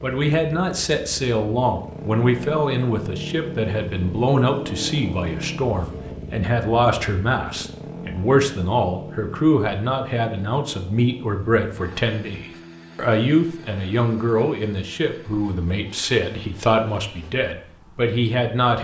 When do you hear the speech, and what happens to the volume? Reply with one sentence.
The speech can be heard from 0.0 to 18.7 s, at a steady volume.